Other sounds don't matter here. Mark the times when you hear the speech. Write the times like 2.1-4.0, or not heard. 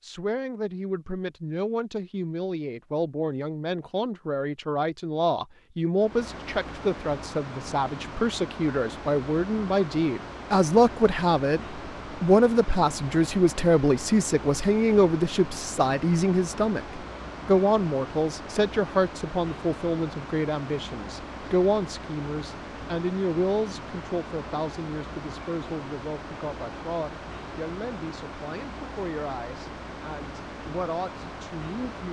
0.0-32.0.